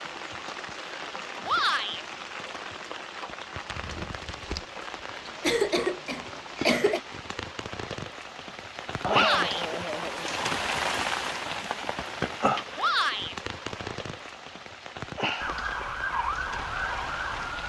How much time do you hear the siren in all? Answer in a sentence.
You can hear the siren for 2 seconds altogether.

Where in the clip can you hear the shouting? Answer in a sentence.
You can hear the shouting from 1.4 to 2.0 s, from 9.1 to 9.7 s and from 12.8 to 13.3 s.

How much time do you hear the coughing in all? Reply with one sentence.
The coughing can be heard for 3 seconds in total.